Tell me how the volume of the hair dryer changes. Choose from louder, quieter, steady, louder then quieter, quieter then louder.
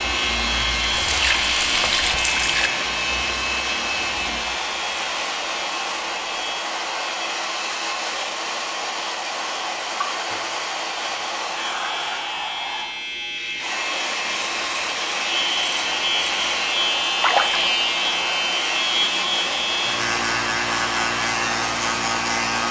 steady.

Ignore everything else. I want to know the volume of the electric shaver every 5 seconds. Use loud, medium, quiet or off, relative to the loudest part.
loud, medium, medium, loud, loud.